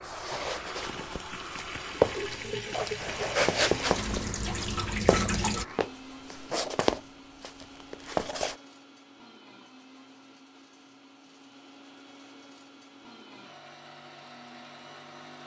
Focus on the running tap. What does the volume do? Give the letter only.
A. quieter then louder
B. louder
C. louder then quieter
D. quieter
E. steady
B.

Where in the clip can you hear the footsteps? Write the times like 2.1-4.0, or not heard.
0.0-8.6.